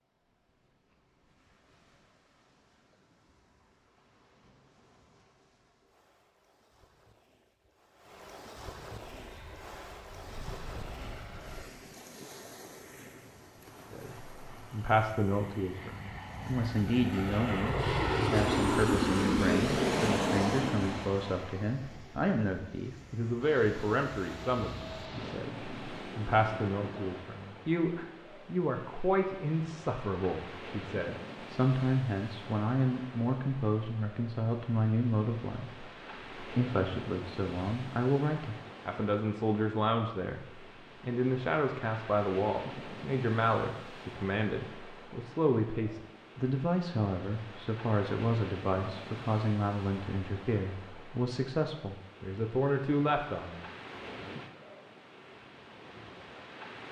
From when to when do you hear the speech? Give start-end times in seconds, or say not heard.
13.9-53.6.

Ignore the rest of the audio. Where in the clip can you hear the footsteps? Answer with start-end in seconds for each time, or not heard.
not heard.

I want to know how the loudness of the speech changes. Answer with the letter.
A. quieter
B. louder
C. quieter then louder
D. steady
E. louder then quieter
D.